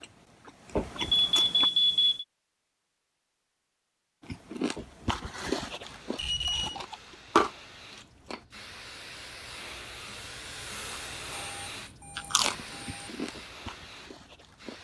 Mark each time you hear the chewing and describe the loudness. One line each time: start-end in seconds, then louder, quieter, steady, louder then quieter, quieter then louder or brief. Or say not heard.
0.0-1.7 brief
4.2-8.4 quieter then louder
12.2-14.8 brief.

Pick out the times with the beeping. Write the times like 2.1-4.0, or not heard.
0.9-2.2, 6.2-6.8, 11.1-13.1.